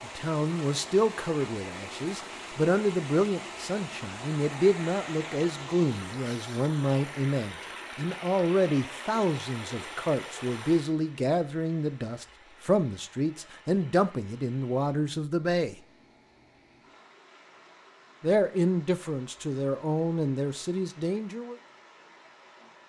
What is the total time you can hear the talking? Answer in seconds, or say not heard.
19 s.